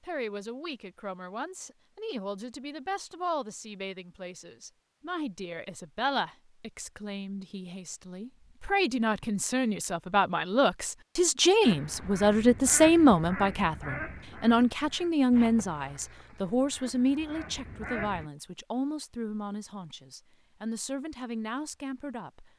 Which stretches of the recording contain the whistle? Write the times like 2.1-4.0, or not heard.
not heard.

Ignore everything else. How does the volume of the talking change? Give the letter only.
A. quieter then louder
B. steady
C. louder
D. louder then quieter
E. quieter
D.